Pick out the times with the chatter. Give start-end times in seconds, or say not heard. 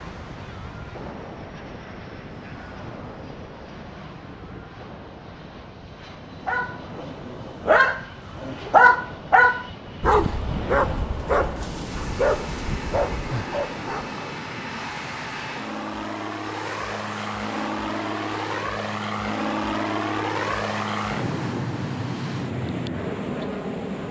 not heard.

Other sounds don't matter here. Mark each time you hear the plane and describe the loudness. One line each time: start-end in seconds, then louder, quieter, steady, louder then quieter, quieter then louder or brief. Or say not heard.
0.1-24.0 louder.